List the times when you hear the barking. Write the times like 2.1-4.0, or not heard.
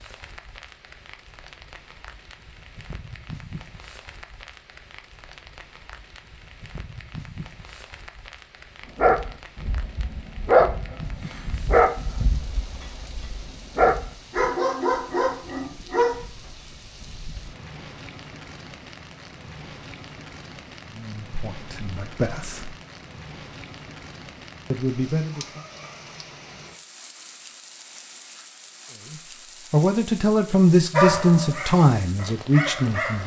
8.9-16.2, 30.9-33.2.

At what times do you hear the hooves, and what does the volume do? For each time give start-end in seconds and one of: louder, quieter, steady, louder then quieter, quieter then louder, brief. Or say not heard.
not heard.